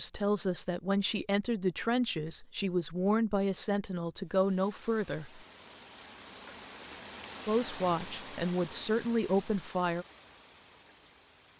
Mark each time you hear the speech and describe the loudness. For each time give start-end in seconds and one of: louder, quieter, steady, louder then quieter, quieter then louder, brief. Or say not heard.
0.0-5.4 steady
7.5-10.1 brief.